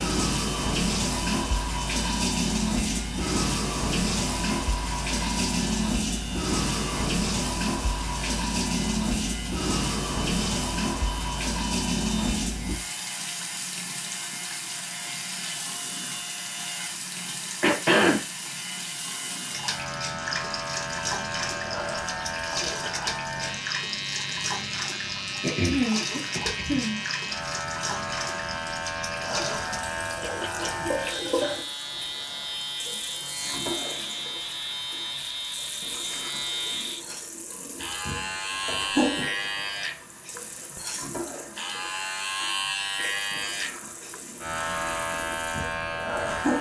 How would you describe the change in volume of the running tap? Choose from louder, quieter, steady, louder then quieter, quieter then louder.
quieter.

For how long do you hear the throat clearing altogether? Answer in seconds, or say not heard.
2 s.